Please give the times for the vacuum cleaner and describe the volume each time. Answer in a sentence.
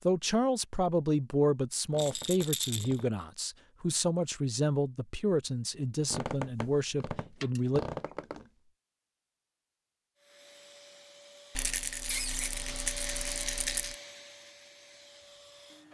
The vacuum cleaner can be heard from 10.2 to 15.8 s, getting louder then quieter.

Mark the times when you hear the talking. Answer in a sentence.
The talking can be heard from 0.1 to 7.8 s.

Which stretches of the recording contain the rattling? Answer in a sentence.
You can hear the rattling from 1.9 to 3.0 s, from 7.3 to 7.8 s and from 11.6 to 13.9 s.